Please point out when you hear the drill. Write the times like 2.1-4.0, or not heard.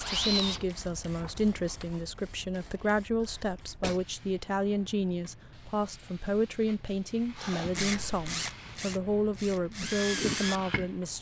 0.0-2.9, 7.3-11.1.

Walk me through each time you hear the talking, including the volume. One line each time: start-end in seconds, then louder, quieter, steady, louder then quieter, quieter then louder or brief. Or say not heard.
0.0-11.1 steady.